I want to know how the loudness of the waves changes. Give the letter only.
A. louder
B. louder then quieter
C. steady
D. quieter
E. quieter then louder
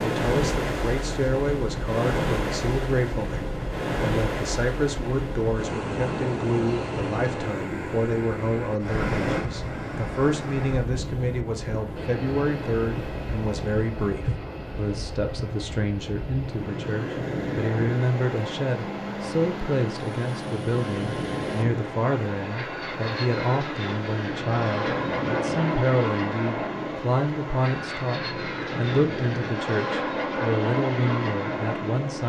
D.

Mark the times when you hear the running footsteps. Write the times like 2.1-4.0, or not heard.
not heard.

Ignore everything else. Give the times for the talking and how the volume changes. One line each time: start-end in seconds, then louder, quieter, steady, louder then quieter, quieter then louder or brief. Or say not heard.
0.0-32.2 steady.